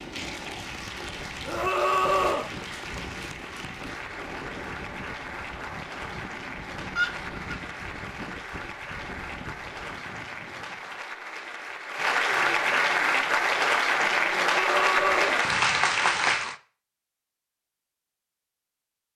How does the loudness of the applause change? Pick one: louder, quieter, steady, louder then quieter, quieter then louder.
louder.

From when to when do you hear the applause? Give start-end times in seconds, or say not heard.
0.0-16.6.